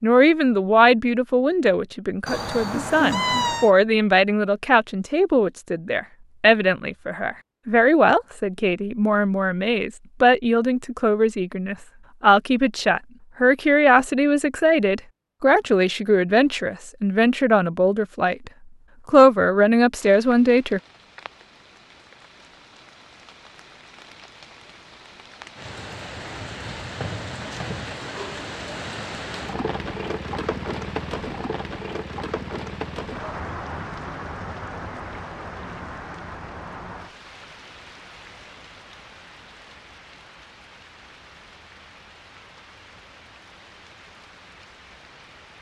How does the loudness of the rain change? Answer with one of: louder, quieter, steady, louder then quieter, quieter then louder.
louder then quieter.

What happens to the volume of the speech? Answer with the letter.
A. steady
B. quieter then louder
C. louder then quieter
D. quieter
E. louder
A.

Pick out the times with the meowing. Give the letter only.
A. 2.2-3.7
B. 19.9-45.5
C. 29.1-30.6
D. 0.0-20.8
A.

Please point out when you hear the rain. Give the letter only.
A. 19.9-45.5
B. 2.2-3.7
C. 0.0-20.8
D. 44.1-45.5
A.